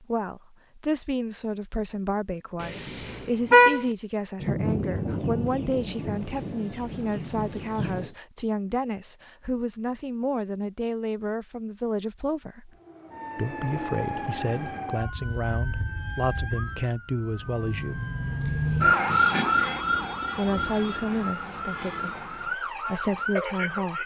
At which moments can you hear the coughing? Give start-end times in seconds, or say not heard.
not heard.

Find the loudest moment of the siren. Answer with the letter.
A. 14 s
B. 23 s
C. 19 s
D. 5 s
C.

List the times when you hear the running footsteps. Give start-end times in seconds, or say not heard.
not heard.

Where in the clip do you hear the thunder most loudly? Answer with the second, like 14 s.
5 s.